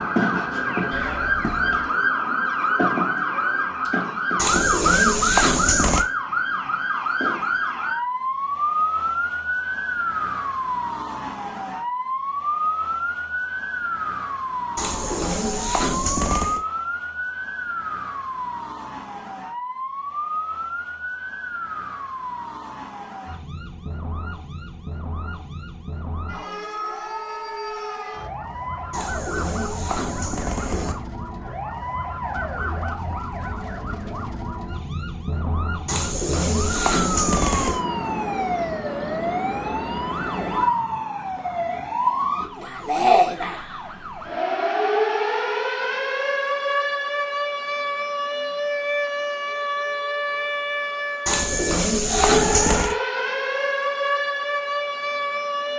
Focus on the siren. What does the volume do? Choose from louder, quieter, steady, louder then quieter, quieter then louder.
quieter then louder.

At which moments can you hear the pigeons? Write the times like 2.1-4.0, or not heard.
4.3-6.0, 14.8-16.6, 28.9-30.9, 35.9-37.8, 51.2-53.0.